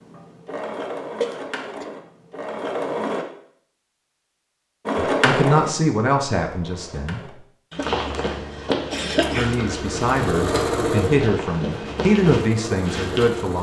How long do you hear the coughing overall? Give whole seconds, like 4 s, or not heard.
2 s.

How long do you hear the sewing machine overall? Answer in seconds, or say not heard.
10 s.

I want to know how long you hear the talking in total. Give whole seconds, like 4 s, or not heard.
6 s.